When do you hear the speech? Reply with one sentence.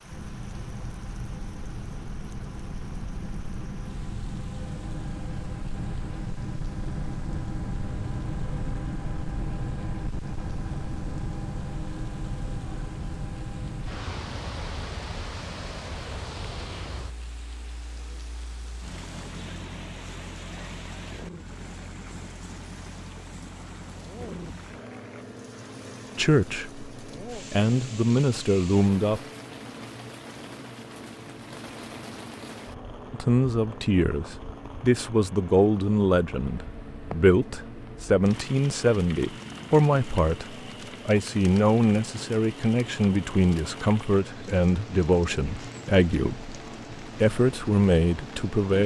The speech can be heard from 26.1 to 29.2 s and from 33.1 to 48.8 s.